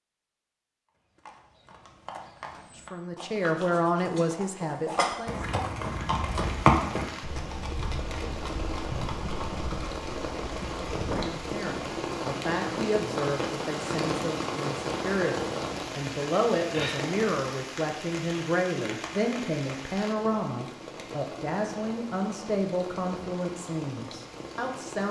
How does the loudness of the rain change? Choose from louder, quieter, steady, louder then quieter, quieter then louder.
louder then quieter.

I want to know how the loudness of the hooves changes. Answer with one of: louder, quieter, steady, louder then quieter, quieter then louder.
louder then quieter.